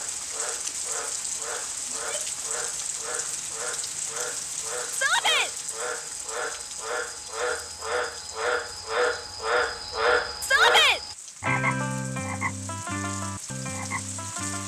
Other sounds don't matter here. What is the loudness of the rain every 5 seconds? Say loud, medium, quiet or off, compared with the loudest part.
loud, medium, medium.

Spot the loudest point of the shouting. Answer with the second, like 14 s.
11 s.